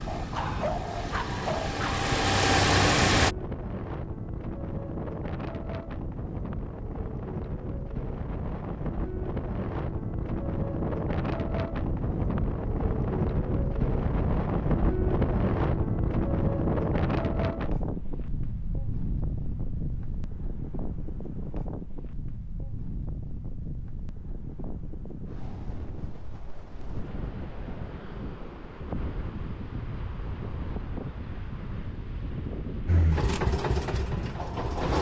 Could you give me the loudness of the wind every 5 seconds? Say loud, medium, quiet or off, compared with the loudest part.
medium, medium, loud, loud, medium, medium, medium.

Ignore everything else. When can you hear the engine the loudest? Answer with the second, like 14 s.
3 s.